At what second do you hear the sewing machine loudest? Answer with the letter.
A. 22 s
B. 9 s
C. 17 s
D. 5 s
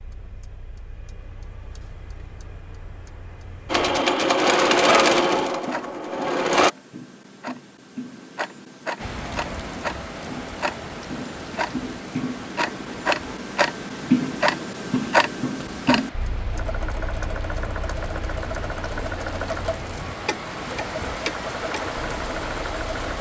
D.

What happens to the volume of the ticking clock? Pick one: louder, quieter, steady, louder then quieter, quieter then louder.
louder then quieter.